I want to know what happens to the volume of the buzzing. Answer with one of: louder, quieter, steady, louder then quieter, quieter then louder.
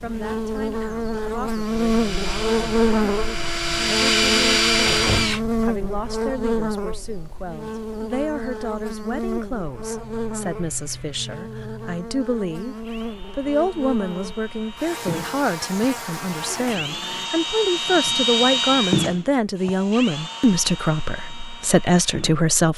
quieter.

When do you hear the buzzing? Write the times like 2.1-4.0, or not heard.
0.0-17.2.